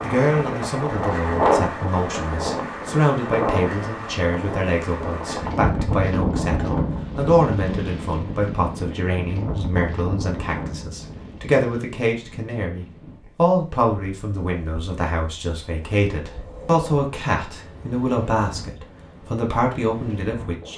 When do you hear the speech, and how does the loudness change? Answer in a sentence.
The speech can be heard from 0.0 to 20.7 s, at a steady volume.